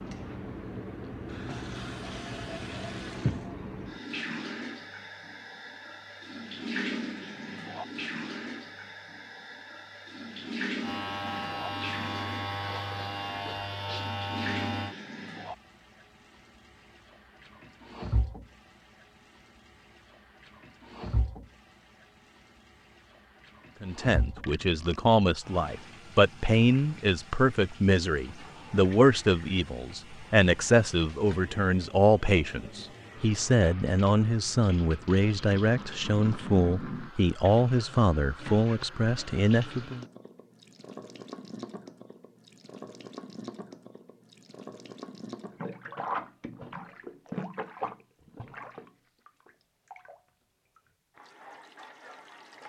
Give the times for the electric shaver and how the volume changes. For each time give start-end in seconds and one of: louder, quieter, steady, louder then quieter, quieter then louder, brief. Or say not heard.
10.8-14.9 steady.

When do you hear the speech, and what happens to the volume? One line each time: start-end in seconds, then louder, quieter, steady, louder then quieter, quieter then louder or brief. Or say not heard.
23.8-40.0 steady.